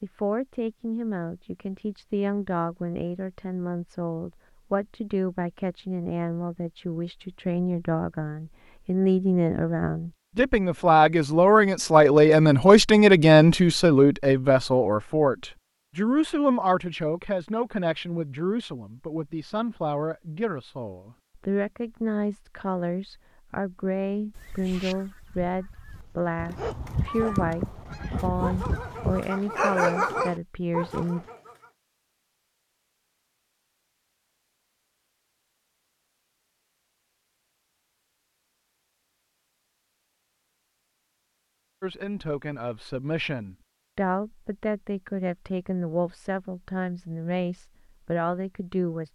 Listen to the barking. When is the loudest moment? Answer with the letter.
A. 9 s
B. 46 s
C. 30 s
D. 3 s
C.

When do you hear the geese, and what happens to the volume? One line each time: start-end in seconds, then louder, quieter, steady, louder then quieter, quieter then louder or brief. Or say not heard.
24.4-29.2 quieter then louder.